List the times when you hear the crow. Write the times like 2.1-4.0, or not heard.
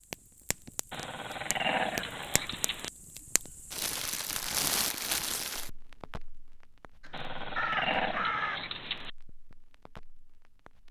7.0-8.6.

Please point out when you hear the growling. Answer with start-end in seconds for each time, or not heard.
0.9-2.9, 7.1-9.1.